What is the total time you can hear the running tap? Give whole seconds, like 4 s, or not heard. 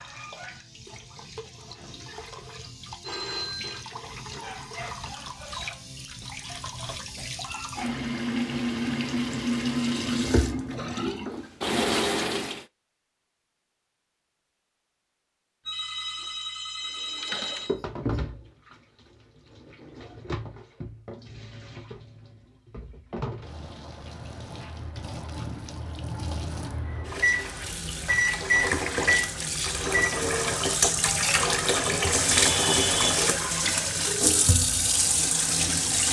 32 s.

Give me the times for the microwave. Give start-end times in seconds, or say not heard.
27.2-30.1.